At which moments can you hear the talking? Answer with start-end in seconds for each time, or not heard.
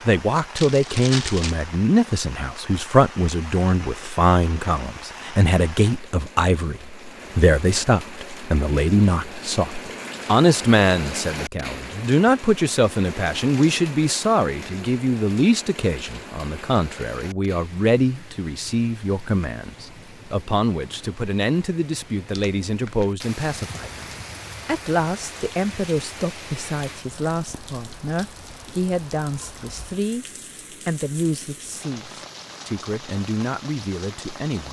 0.1-34.6.